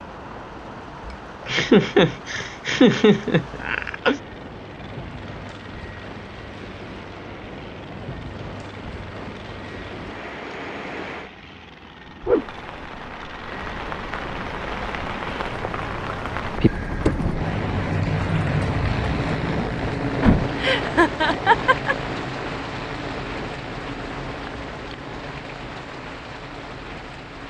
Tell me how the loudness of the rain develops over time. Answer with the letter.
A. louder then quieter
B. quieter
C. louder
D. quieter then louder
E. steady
A.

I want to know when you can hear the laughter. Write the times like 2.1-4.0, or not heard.
1.4-4.2, 20.6-21.9.